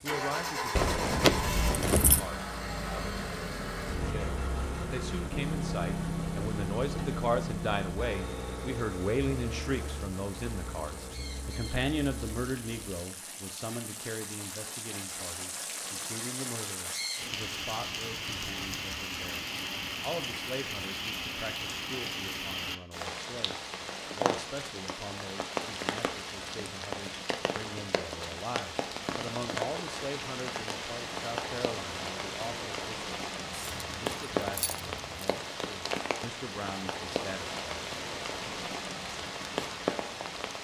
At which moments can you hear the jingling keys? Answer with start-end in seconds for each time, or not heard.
0.8-2.2, 33.5-35.3.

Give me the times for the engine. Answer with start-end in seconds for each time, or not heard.
0.0-13.0.